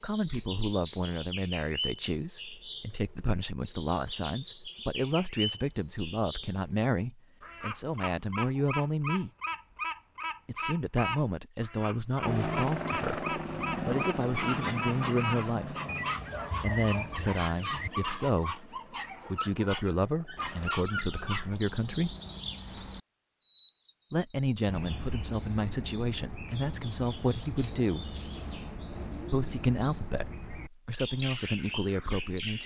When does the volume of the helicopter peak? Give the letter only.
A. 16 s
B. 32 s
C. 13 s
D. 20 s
C.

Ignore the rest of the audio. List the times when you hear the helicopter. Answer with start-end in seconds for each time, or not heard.
12.2-22.4.